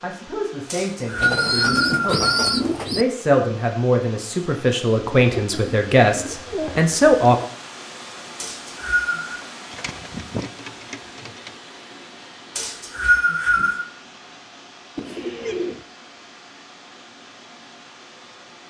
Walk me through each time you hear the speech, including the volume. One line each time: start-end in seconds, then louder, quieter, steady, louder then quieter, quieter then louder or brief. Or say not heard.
0.0-7.3 louder.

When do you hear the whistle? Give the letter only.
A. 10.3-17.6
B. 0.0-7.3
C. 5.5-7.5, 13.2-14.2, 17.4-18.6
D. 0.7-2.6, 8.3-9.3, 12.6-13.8
D.